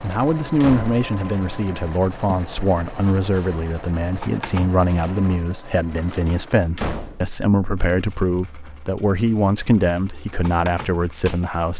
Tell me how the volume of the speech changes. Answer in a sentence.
The loudness of the speech stays about the same.